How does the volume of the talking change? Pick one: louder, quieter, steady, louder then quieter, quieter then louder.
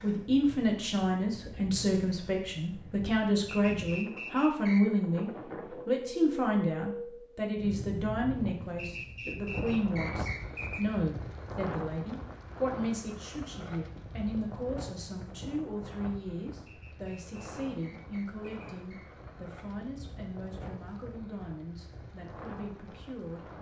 quieter.